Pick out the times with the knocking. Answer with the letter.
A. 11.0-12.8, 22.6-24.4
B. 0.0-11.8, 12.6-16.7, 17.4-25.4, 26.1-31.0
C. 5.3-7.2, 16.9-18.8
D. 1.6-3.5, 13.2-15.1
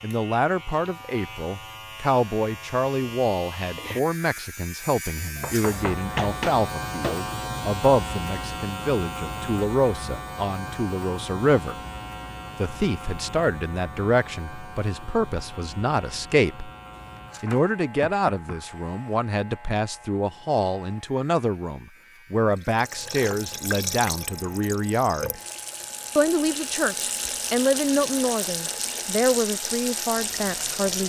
C.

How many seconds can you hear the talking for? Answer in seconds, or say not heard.
29 s.